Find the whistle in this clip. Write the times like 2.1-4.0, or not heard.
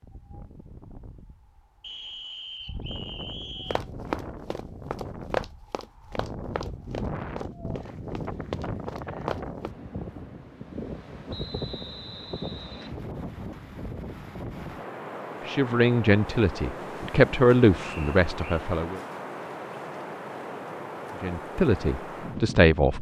1.8-3.8, 11.3-12.9, 17.8-18.6.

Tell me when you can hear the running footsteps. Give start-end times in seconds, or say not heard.
3.6-9.7.